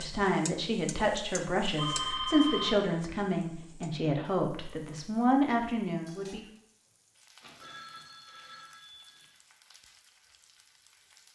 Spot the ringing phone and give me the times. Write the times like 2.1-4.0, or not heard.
1.8-2.9, 7.4-9.3.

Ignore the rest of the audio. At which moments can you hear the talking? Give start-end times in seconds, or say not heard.
0.0-6.5.